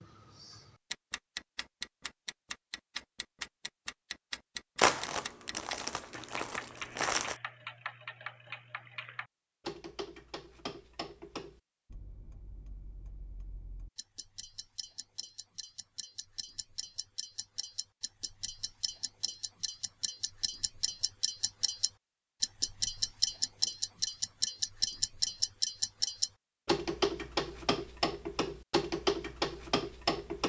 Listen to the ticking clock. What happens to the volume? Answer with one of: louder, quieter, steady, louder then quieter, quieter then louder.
quieter then louder.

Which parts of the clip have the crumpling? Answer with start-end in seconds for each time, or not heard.
4.8-7.3.